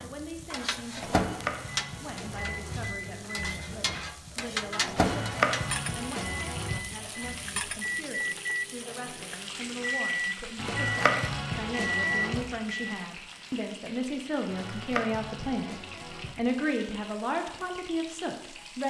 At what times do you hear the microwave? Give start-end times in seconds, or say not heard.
0.0-12.8.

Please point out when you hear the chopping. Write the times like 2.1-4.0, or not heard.
1.0-2.9, 5.0-6.8, 10.6-12.4, 14.5-16.4.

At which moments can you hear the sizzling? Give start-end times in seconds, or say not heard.
0.0-18.8.